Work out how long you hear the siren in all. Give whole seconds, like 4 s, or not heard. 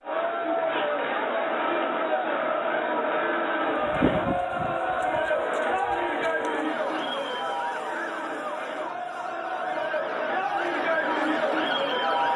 9 s.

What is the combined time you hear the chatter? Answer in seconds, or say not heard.
12 s.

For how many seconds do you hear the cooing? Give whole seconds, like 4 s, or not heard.
not heard.